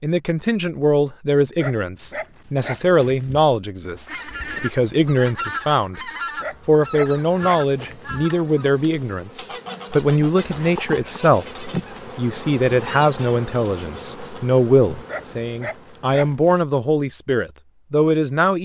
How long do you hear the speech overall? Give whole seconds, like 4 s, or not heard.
18 s.